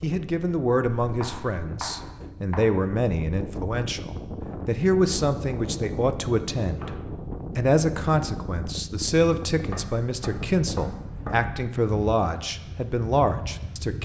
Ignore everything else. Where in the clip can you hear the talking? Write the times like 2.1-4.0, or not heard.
0.0-7.0, 7.5-14.0.